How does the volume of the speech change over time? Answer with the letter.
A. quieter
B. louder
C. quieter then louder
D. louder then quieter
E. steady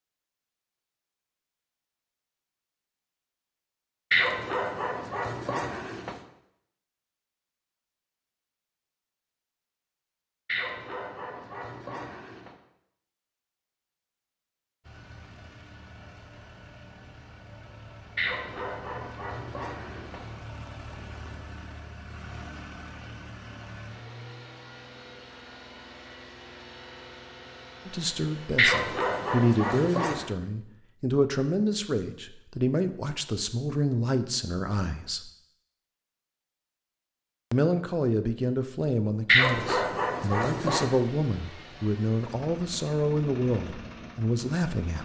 E.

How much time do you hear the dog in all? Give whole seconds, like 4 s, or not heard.
10 s.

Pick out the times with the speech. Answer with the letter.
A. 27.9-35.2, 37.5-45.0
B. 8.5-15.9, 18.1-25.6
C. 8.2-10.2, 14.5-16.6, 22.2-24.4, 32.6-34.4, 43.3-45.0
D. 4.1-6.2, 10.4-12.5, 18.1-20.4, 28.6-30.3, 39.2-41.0
A.